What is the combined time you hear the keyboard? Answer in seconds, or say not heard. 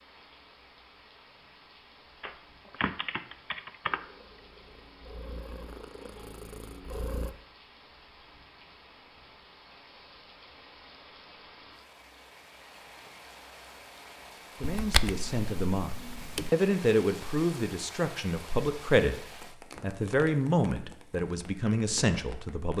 4 s.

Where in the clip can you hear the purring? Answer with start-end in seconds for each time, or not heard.
3.9-7.3.